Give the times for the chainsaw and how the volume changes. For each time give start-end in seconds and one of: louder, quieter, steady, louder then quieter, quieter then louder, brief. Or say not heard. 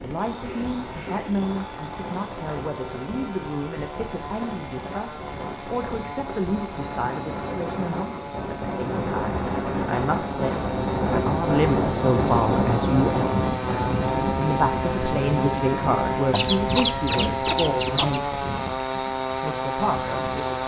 0.0-20.6 louder.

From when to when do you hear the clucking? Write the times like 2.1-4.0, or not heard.
16.3-18.3.